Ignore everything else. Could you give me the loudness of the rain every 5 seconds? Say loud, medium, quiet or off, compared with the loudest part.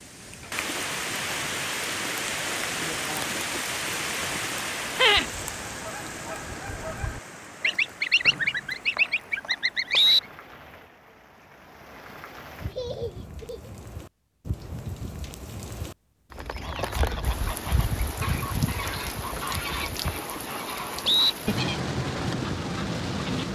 loud, medium, quiet, loud, loud.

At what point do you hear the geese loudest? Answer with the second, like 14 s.
8 s.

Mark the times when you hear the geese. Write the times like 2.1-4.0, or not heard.
5.3-10.2, 16.6-23.4.